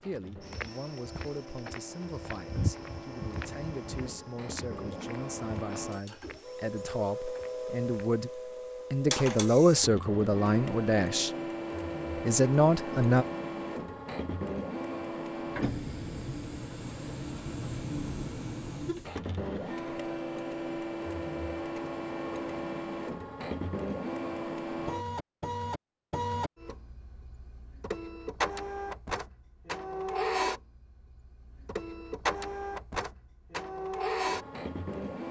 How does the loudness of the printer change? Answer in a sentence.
The loudness of the printer goes up.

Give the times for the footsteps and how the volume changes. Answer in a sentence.
The footsteps can be heard from 0.4 to 8.1 s, getting louder then quieter.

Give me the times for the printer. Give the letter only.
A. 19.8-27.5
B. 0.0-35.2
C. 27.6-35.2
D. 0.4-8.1
B.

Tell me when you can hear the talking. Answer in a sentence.
You can hear the talking from 0.0 to 11.3 s and from 12.2 to 13.2 s.